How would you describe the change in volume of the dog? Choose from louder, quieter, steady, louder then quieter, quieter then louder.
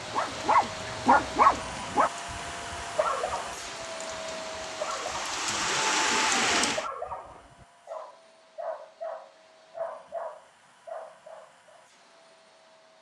quieter.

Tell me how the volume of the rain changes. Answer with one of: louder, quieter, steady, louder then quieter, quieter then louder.
louder.